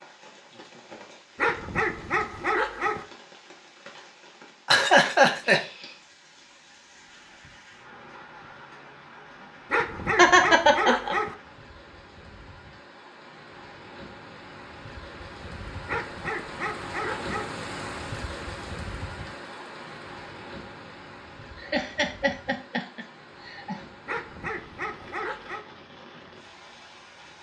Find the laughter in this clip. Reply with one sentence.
The laughter can be heard from 4.7 to 5.6 s, from 10.2 to 11.2 s and from 21.6 to 23.8 s.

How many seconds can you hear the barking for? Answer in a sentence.
The barking can be heard for 7 seconds in total.